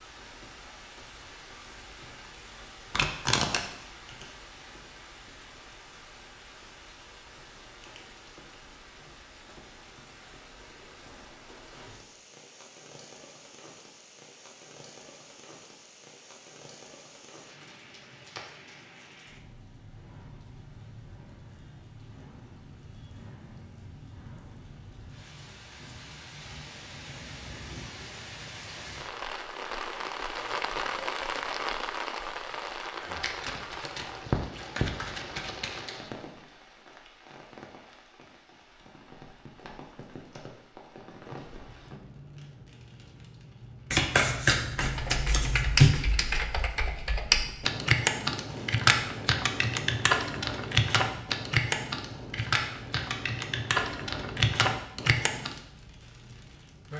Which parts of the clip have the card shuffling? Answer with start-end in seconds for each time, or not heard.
2.9-3.6, 33.2-35.9, 43.9-45.9.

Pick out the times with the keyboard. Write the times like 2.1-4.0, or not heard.
44.8-55.6.